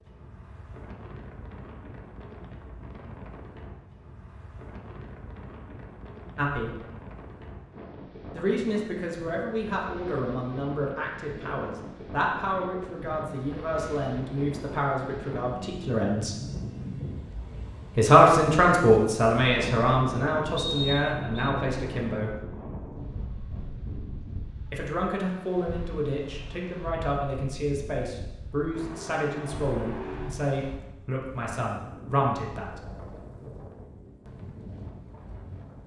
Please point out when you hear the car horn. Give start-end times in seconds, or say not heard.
28.7-30.3.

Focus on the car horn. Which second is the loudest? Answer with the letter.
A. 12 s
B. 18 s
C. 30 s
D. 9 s
C.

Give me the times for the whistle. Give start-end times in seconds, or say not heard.
20.6-21.5.